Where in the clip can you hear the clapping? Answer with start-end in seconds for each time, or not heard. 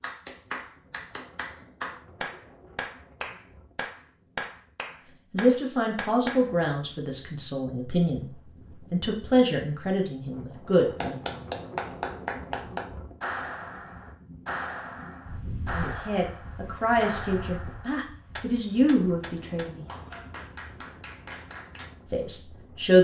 0.0-6.5, 10.9-21.9.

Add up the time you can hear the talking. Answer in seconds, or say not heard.
10 s.